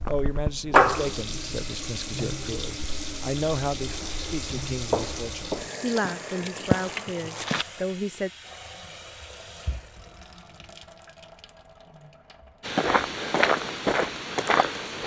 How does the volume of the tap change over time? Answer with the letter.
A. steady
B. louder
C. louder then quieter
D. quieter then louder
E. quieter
E.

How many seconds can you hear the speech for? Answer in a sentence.
You can hear the speech for 8 seconds altogether.